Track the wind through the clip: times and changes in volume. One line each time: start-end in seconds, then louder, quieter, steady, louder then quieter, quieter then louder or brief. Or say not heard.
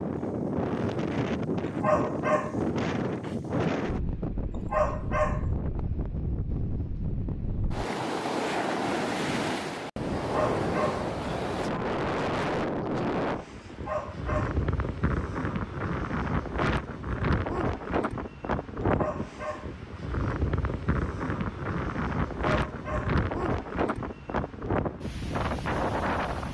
0.0-26.4 steady.